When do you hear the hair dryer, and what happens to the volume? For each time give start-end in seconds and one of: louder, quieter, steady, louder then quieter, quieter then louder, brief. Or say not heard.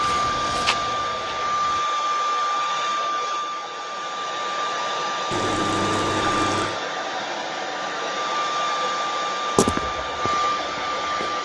0.0-11.4 steady.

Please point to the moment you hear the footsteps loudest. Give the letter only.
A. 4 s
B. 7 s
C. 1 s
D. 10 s
D.